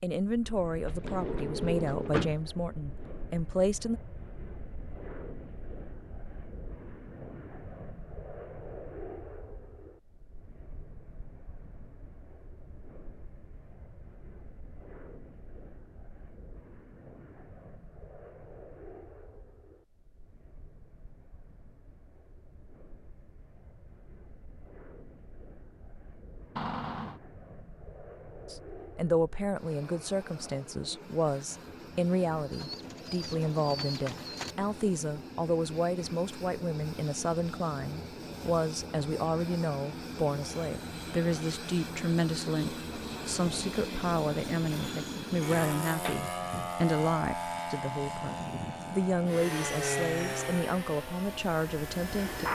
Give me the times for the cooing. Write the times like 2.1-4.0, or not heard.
32.5-34.5.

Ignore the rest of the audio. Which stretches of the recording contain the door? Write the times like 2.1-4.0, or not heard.
0.8-2.4, 26.6-27.2, 45.5-46.7.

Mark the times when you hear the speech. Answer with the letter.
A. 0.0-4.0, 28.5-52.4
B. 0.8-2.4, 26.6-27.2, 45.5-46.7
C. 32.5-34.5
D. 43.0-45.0
A.